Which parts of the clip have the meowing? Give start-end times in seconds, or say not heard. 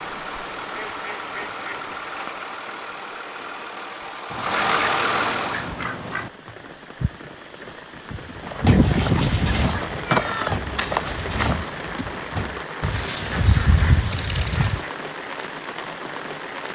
9.9-10.6.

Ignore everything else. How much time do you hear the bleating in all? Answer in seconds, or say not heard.
not heard.